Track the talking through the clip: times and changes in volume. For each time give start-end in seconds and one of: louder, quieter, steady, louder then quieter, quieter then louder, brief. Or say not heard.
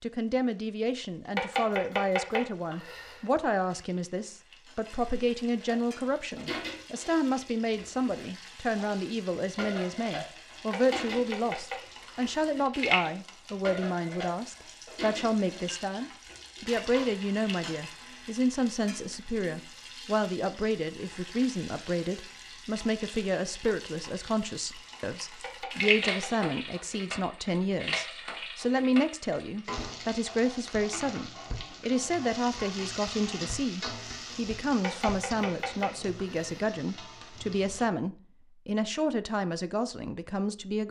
0.0-40.8 steady.